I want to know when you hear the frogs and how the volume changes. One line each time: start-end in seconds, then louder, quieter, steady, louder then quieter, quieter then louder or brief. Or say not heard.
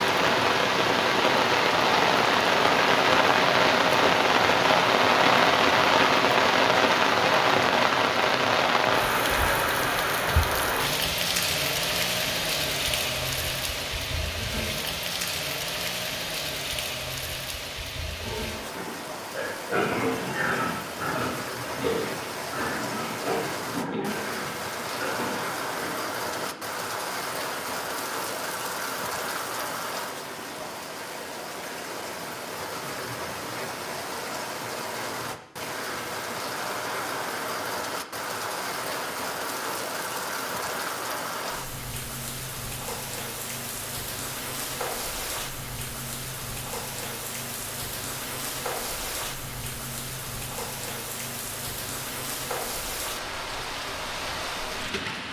not heard.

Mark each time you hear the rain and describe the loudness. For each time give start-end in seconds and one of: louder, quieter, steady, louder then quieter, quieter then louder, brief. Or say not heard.
0.0-55.2 quieter.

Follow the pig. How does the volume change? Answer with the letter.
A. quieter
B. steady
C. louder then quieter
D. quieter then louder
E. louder
A.